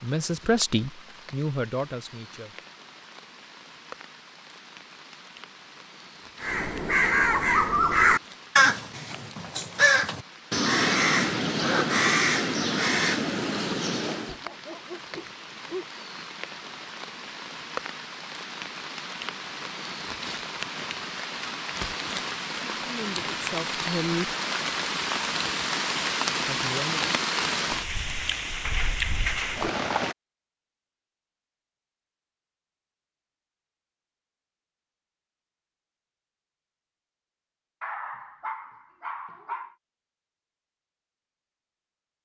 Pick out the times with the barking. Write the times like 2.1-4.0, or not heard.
14.2-16.3, 37.8-39.8.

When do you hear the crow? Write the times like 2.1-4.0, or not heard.
6.4-14.3.